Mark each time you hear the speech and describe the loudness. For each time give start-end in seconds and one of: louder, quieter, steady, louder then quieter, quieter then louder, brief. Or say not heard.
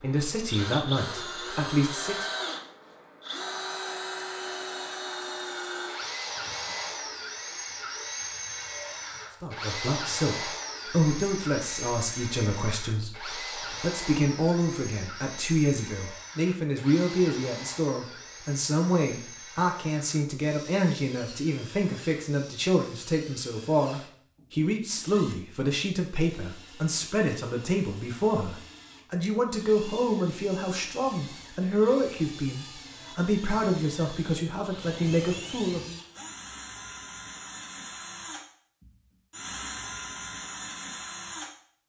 0.0-2.2 brief
9.4-36.0 steady.